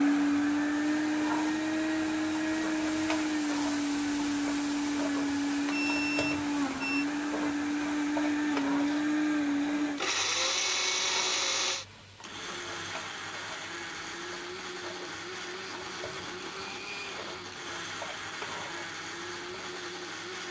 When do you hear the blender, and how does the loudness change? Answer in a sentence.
You can hear the blender from 0.0 to 20.4 s, getting quieter.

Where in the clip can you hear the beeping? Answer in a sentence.
You can hear the beeping from 5.7 to 7.0 s.